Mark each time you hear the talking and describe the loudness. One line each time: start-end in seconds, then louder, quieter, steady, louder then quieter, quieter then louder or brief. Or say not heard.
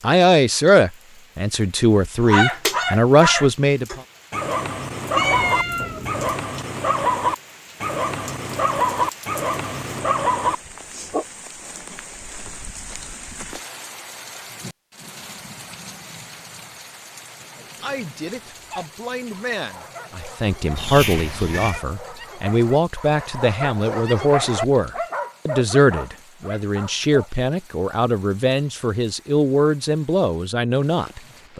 0.0-4.0 quieter then louder
17.6-31.5 louder.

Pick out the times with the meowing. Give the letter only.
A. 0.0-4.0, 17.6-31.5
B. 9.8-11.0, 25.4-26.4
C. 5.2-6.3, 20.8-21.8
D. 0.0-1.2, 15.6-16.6
C.